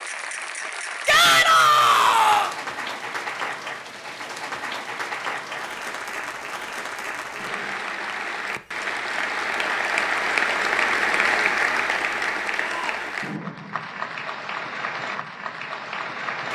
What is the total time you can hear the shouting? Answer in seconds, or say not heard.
2 s.